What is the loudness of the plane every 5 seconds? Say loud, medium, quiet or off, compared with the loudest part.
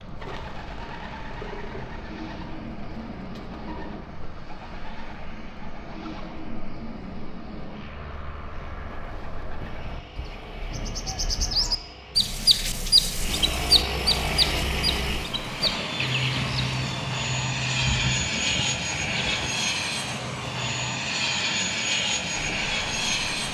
quiet, quiet, medium, loud, loud.